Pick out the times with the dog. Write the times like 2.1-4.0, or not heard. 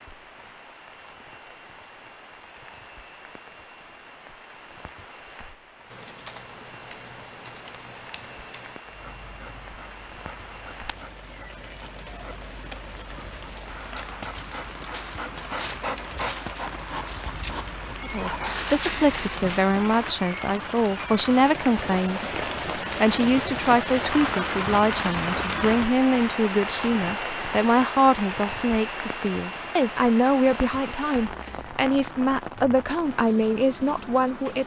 8.8-19.7.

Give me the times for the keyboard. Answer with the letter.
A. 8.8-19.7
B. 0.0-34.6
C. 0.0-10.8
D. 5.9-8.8
D.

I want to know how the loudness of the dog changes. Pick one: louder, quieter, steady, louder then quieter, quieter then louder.
louder.